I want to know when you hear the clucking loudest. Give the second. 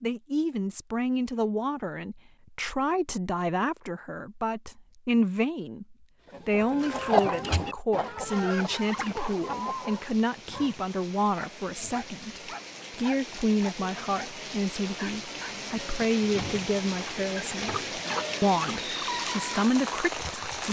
7 s.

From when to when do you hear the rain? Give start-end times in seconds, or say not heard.
8.2-20.6.